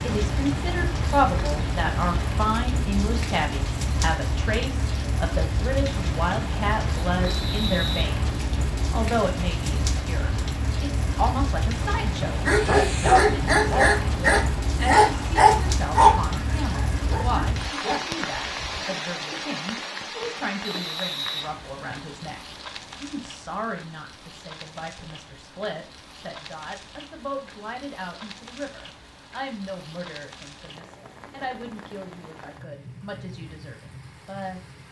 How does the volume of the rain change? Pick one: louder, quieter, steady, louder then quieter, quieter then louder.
quieter.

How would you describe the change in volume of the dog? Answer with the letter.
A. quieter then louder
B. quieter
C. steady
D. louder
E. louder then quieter
B.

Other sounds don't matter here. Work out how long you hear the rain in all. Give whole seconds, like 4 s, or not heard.
35 s.